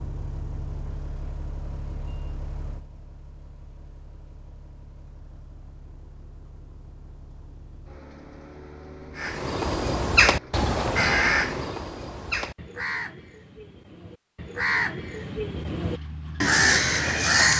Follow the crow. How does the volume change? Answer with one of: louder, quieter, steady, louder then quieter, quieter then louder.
quieter then louder.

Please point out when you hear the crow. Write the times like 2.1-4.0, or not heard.
9.2-17.5.